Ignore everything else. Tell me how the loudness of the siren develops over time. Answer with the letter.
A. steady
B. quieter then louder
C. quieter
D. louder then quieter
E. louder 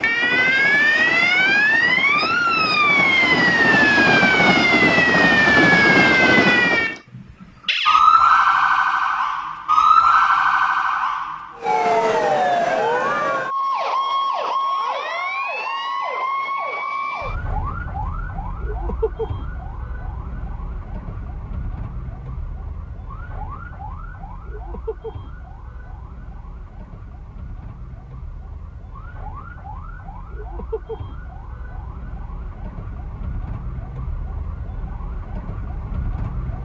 C.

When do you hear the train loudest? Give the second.
6 s.